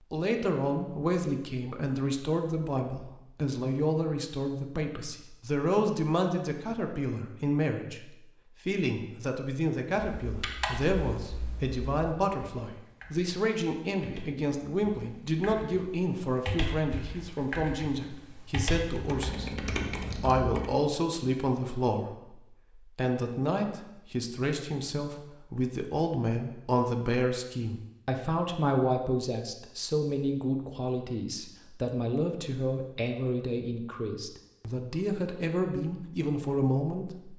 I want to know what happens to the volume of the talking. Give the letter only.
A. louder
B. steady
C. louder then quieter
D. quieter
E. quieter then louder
B.